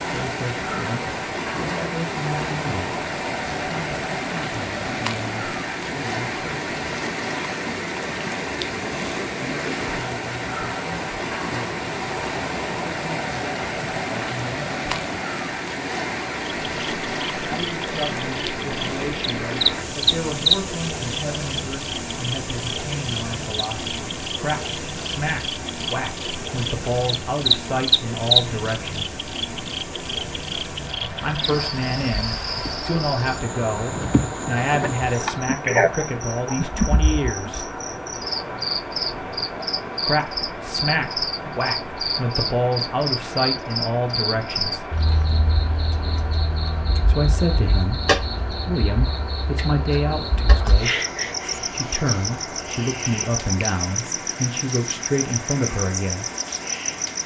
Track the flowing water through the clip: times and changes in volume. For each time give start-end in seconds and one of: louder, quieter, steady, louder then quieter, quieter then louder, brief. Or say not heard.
0.0-57.2 quieter.